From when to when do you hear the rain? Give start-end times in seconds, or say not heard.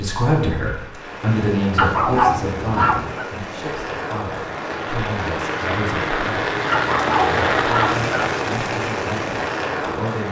0.0-10.2.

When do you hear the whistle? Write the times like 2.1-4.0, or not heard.
not heard.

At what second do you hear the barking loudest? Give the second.
2 s.